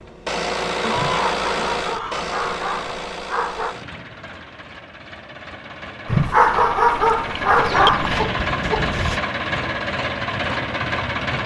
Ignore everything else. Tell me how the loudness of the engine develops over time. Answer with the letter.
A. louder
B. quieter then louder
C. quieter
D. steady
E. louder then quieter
B.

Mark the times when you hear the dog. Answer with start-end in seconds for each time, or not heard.
0.9-3.8, 6.0-8.2.